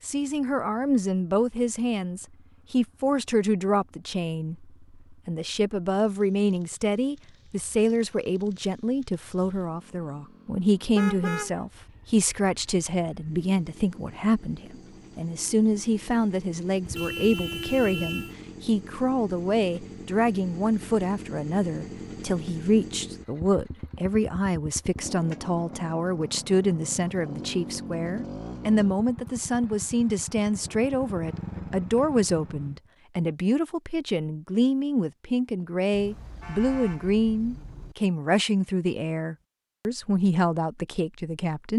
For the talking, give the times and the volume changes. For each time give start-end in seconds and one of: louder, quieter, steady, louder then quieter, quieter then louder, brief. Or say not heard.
0.0-41.7 steady.